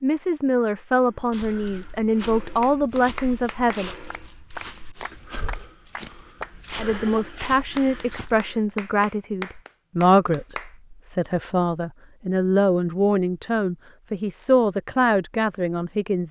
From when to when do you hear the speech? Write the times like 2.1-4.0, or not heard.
0.0-3.9, 6.8-16.2.